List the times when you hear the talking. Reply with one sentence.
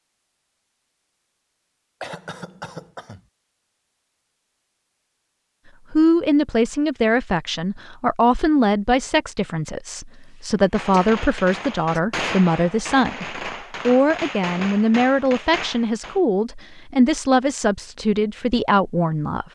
You can hear the talking from 5.9 to 19.4 s.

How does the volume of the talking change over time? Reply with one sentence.
The loudness of the talking stays about the same.